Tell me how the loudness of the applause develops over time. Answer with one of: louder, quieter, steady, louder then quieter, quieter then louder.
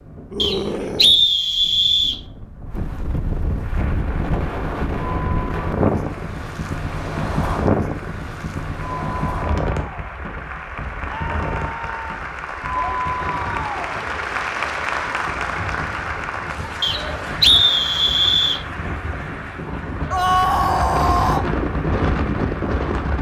louder then quieter.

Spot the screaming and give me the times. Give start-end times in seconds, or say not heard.
0.3-1.2, 11.1-12.1, 20.1-21.4.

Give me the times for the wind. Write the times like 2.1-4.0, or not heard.
0.0-23.1.